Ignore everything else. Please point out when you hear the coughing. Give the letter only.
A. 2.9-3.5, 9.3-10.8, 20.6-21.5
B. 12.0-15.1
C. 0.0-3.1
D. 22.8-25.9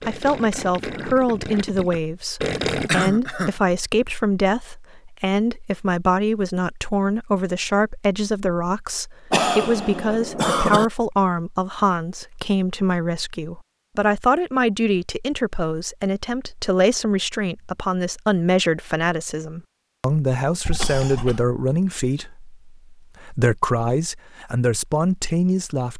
A.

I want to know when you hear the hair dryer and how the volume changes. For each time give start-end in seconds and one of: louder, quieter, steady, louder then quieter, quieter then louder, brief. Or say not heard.
not heard.